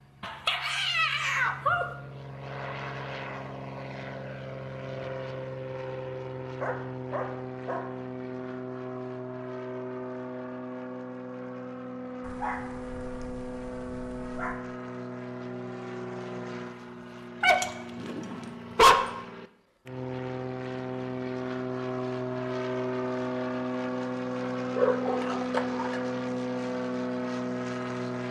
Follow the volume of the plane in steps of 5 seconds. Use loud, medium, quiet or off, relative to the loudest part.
medium, medium, medium, medium, loud, loud.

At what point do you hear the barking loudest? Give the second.
19 s.